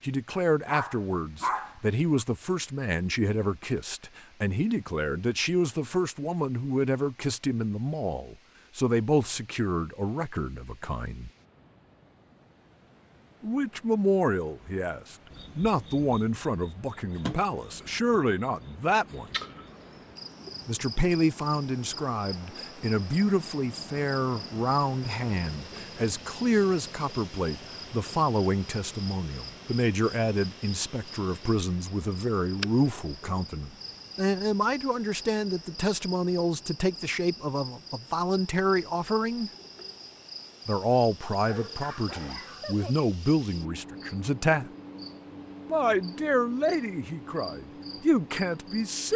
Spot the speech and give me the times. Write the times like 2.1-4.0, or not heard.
0.0-11.3, 13.4-19.4, 20.6-39.5, 40.6-44.7, 45.6-49.1.